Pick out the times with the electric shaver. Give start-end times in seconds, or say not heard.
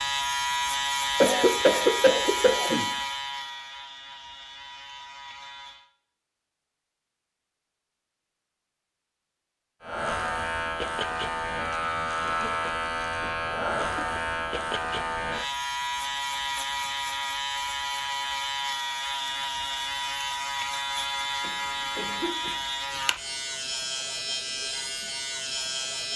0.0-5.9, 9.8-26.1.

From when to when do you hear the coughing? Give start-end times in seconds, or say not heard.
1.2-2.9, 12.2-14.2, 21.4-22.6.